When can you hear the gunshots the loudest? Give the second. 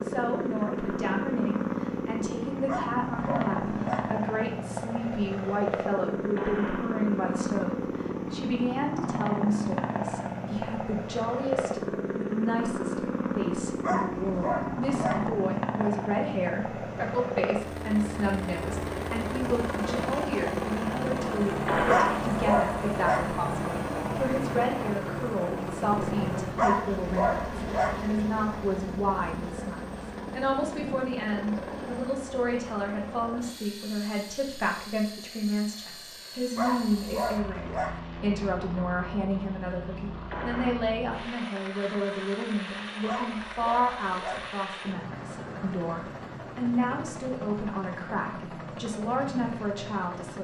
22 s.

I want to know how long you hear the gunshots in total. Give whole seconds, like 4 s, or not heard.
2 s.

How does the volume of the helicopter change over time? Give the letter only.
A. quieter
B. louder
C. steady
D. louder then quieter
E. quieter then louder
A.